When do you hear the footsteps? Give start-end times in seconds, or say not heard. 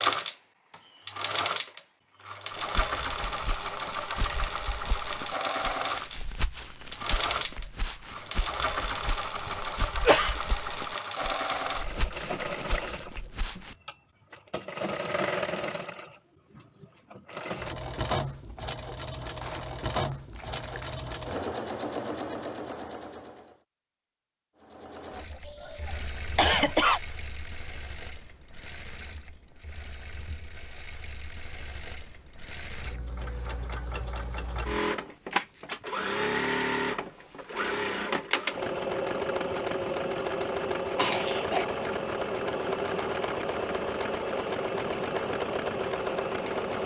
2.5-13.8.